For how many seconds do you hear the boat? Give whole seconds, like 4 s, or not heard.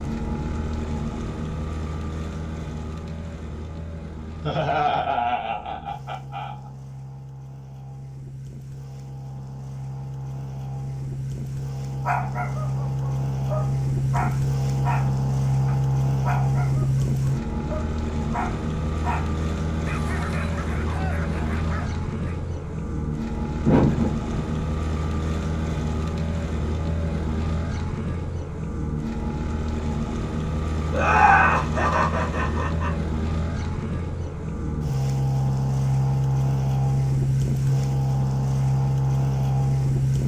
40 s.